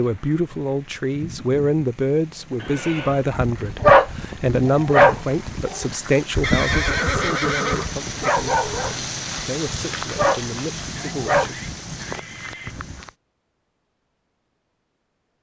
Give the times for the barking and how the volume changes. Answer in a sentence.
You can hear the barking from 3.3 to 11.5 s, getting quieter then louder.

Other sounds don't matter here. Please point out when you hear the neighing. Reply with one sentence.
The neighing can be heard from 2.5 to 3.2 s, from 6.4 to 7.9 s and from 10.9 to 12.8 s.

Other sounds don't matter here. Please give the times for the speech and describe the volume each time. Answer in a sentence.
You can hear the speech from 0.0 to 11.6 s, getting quieter.